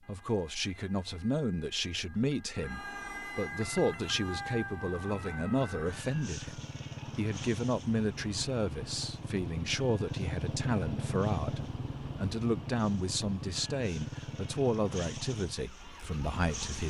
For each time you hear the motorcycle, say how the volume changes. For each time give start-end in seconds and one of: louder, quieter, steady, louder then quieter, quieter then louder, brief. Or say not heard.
3.5-16.8 louder then quieter.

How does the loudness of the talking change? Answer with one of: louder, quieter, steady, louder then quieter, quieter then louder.
steady.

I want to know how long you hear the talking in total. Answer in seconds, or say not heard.
17 s.